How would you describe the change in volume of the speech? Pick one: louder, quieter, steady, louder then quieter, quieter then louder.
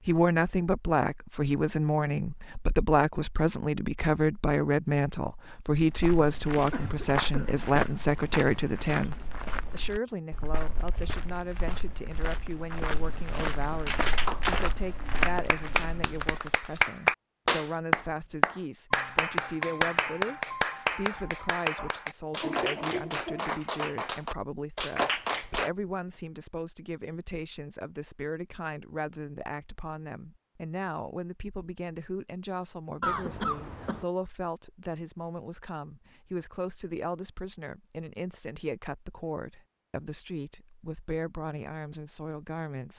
quieter.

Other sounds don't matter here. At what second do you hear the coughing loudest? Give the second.
33 s.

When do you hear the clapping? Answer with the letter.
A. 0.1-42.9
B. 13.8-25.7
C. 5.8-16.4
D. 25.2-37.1
B.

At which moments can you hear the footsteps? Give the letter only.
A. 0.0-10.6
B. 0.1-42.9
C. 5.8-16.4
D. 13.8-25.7
C.